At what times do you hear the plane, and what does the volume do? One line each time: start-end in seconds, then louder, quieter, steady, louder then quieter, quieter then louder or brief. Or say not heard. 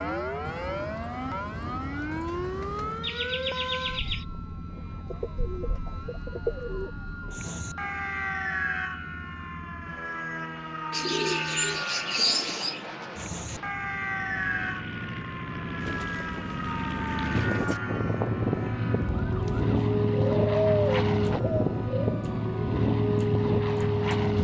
0.0-24.3 louder.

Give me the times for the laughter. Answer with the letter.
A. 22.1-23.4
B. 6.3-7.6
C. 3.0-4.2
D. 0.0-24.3
C.